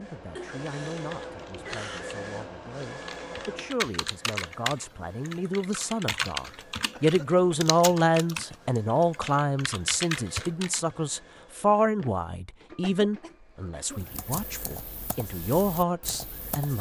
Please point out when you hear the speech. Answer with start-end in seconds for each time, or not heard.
0.0-16.7.